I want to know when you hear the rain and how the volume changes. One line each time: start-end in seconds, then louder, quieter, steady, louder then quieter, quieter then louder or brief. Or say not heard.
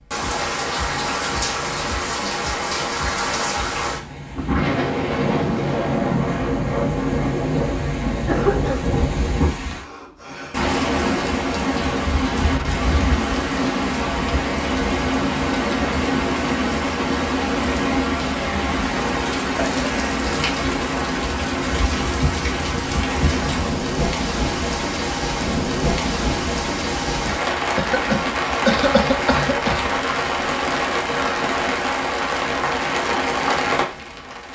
0.1-34.5 steady.